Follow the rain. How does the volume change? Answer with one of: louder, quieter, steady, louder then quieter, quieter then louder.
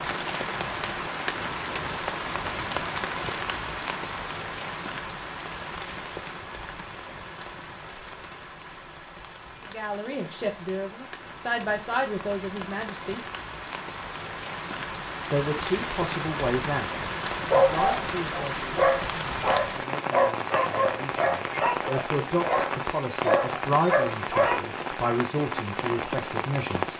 quieter then louder.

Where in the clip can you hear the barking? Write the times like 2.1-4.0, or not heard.
17.4-24.6.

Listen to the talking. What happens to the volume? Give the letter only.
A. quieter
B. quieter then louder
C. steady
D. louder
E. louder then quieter
B.